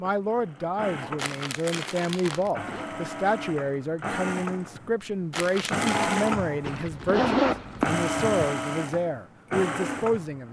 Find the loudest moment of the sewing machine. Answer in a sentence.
The loudest moment of the sewing machine is at 6 seconds.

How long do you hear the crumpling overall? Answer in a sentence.
The crumpling can be heard for 2 seconds in total.